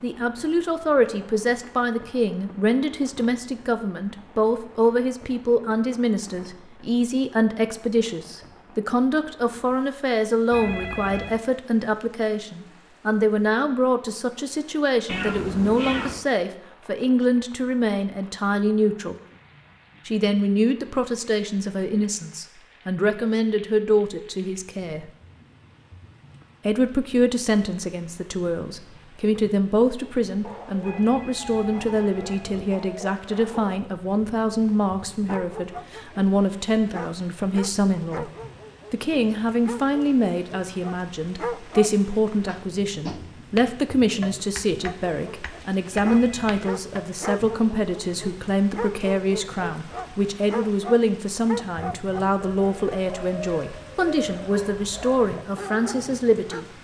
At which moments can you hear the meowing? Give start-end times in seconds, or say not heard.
15.1-16.2.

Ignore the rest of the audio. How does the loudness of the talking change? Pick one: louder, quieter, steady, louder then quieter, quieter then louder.
steady.